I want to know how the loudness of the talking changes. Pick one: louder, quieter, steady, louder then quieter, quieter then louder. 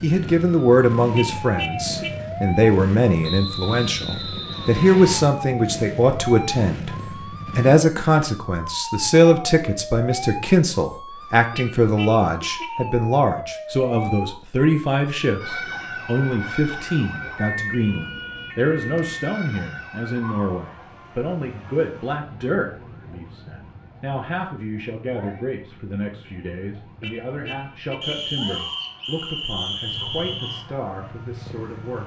quieter.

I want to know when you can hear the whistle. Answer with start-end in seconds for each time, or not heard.
3.2-5.2, 28.0-30.6.